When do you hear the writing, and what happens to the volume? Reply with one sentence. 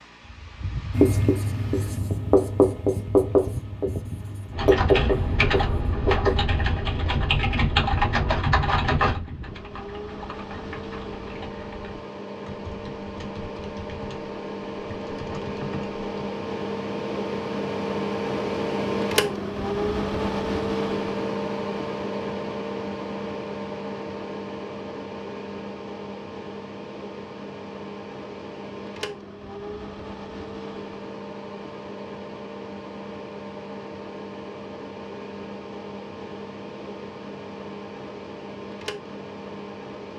The writing can be heard from 0.9 to 6.5 s, getting louder then quieter.